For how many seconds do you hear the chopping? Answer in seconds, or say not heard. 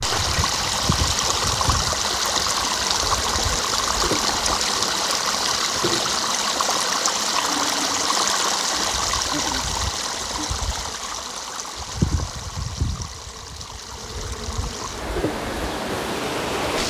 not heard.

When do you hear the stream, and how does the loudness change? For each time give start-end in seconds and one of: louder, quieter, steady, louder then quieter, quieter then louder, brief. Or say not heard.
0.0-16.8 quieter.